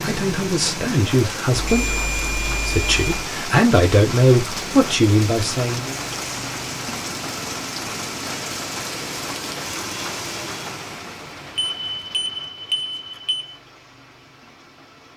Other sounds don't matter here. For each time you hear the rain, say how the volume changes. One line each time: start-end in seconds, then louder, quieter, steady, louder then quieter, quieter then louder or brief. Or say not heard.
0.0-15.1 quieter.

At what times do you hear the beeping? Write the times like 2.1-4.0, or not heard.
1.6-3.1, 11.6-13.6.